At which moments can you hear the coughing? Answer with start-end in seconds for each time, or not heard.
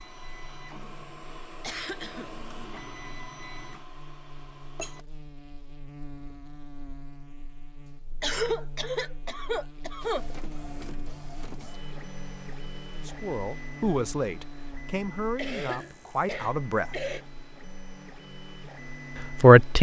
1.6-2.3, 8.2-10.2, 15.3-17.2.